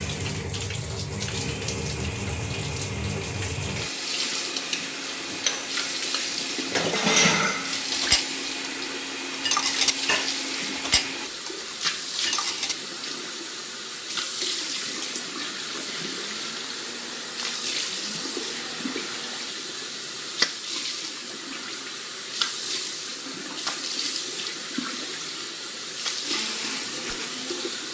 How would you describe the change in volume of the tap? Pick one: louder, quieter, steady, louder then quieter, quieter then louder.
steady.